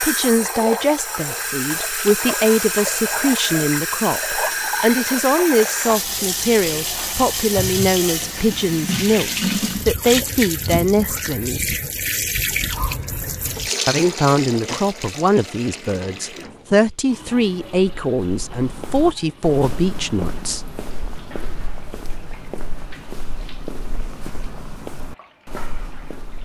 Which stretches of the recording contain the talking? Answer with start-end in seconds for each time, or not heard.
0.0-11.8, 13.8-20.6.